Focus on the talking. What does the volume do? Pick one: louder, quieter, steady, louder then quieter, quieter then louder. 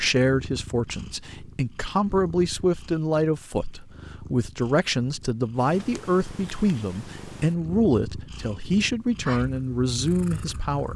steady.